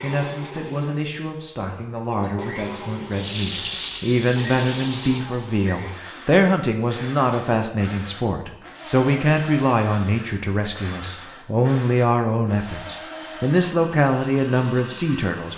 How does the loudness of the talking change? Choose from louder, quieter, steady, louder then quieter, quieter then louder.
louder.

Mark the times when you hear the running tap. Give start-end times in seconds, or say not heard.
3.1-5.3.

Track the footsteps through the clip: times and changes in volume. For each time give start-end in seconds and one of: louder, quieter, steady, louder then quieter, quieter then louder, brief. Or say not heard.
not heard.